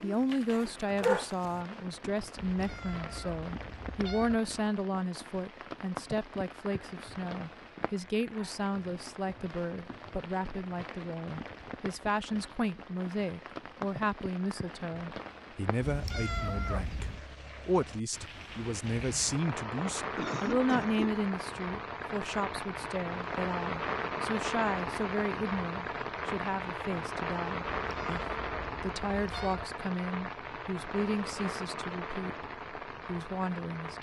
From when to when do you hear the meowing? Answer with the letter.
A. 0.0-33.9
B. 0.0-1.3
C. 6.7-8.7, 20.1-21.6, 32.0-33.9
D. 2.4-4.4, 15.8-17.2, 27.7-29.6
D.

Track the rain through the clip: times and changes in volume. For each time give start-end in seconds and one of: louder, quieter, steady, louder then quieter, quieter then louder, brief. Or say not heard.
0.0-33.9 louder.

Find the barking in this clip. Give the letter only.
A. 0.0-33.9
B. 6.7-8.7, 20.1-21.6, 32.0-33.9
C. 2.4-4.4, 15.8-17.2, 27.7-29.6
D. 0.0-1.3
D.